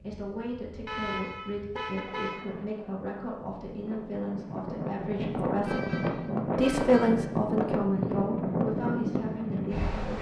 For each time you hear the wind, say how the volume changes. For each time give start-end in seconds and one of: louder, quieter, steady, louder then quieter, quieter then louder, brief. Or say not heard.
0.0-10.1 louder.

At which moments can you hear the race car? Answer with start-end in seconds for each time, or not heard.
not heard.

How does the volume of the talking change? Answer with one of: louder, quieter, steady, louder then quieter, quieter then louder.
louder then quieter.